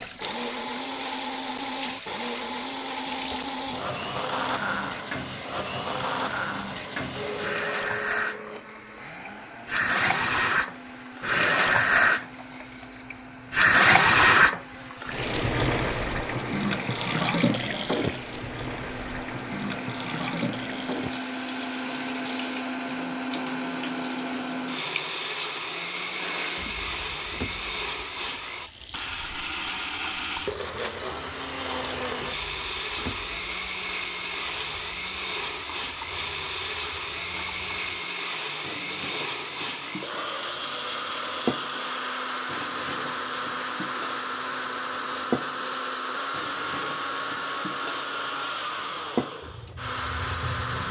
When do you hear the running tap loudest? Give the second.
14 s.